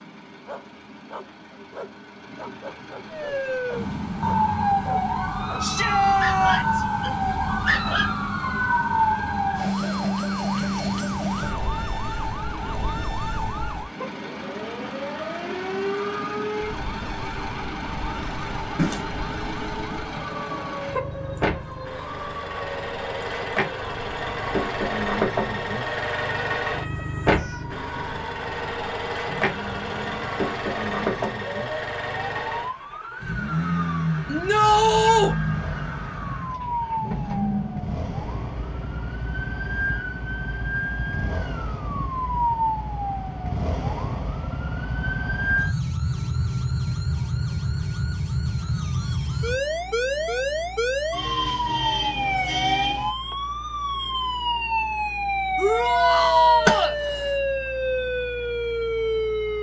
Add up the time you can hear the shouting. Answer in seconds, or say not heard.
4 s.